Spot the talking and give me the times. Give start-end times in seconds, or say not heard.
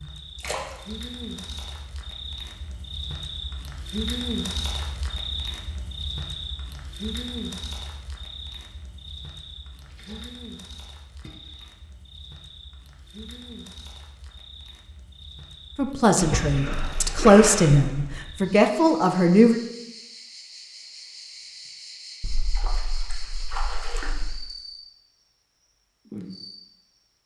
15.8-19.6.